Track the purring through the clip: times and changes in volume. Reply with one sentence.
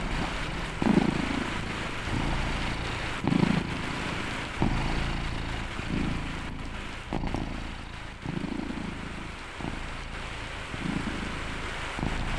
You can hear the purring from 0.0 to 12.3 s, getting quieter.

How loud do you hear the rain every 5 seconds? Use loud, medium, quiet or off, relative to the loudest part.
loud, medium, loud.